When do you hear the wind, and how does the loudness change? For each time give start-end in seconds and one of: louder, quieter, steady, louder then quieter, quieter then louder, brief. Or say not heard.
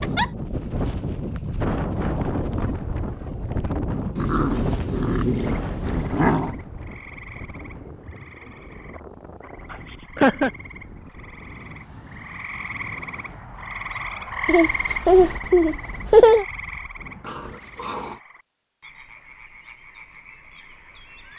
0.0-17.4 quieter.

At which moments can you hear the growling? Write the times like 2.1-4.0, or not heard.
4.2-6.5, 17.2-18.2.